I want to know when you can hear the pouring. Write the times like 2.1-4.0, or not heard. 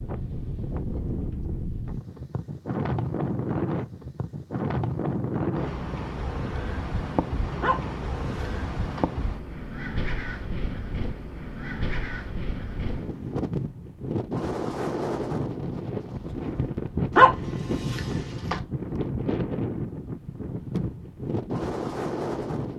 not heard.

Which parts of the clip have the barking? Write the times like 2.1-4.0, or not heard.
7.6-9.1, 17.1-18.6.